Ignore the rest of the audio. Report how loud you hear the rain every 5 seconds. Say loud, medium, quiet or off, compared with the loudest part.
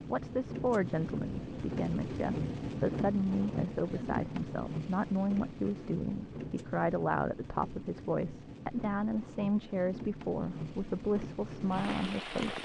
loud, medium, loud.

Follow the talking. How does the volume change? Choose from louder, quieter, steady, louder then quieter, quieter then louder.
steady.